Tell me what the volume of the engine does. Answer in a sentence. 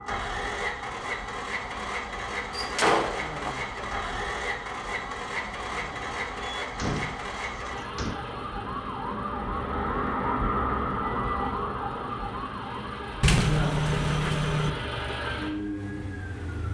The volume of the engine goes down, then up.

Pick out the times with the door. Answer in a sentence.
The door can be heard from 2.5 to 3.5 s, from 6.6 to 8.2 s and from 13.2 to 14.7 s.